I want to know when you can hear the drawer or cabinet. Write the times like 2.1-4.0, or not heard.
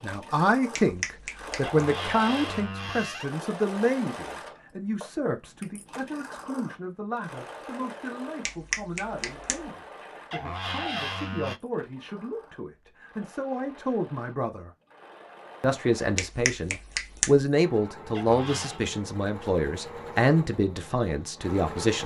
1.6-3.4, 10.3-11.6, 18.1-18.8.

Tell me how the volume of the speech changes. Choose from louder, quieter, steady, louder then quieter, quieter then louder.
quieter then louder.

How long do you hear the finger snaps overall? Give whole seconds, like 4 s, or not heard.
3 s.